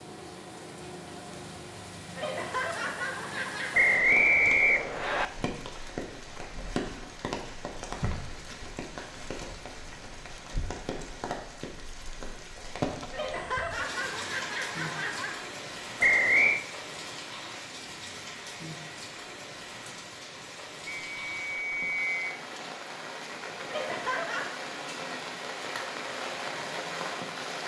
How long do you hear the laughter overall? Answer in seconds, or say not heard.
5 s.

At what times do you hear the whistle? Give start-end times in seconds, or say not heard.
3.7-5.2, 16.0-16.6, 20.9-22.3.